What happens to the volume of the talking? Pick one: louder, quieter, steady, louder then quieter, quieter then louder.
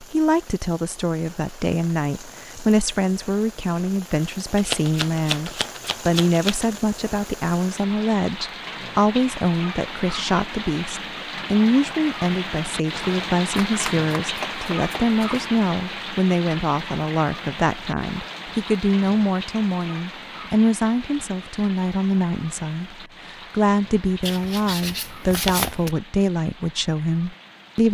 steady.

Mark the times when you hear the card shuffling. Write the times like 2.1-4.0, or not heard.
4.5-6.8, 13.7-15.5, 24.2-25.9.